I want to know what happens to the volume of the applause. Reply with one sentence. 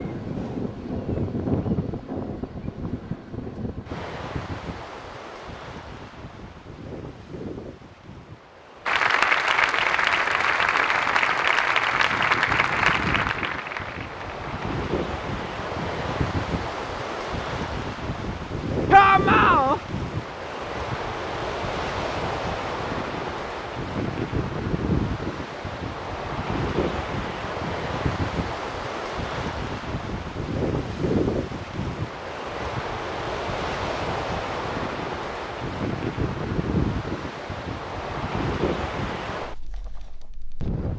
The loudness of the applause goes down.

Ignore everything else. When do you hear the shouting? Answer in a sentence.
You can hear the shouting from 18.9 to 19.8 s.